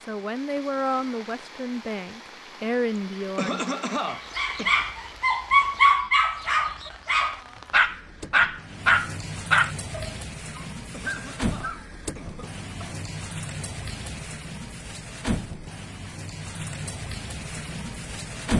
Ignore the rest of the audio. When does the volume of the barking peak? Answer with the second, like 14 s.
6 s.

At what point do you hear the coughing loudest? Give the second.
4 s.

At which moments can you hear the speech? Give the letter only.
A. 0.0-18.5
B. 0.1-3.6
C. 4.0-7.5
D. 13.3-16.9
B.